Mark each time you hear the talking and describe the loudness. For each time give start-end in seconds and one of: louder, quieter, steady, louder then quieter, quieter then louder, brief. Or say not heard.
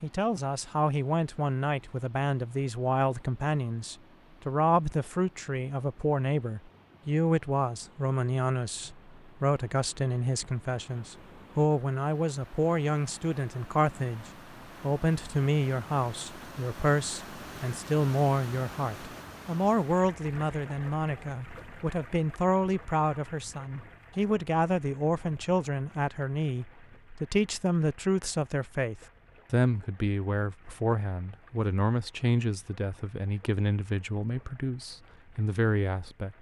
0.0-36.3 steady.